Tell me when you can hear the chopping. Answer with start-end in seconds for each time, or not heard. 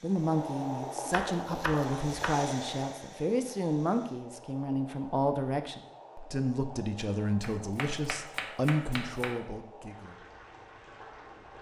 1.1-2.5, 7.4-9.4.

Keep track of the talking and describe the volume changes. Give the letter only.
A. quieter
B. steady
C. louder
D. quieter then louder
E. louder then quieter
B.